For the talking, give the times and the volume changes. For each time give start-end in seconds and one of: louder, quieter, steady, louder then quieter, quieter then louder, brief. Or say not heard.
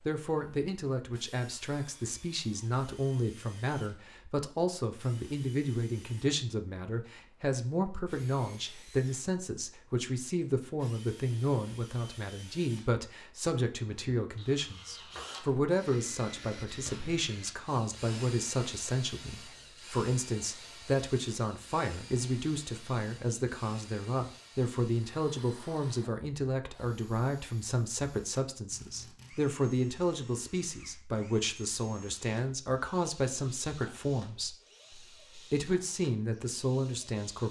0.0-37.4 steady.